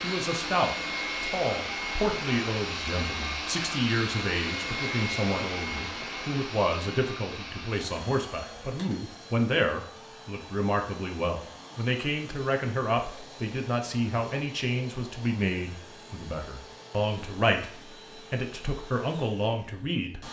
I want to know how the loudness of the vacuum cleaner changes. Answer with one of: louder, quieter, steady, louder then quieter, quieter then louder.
quieter.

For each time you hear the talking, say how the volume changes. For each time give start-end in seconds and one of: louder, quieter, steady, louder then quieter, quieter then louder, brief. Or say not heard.
0.0-20.2 steady.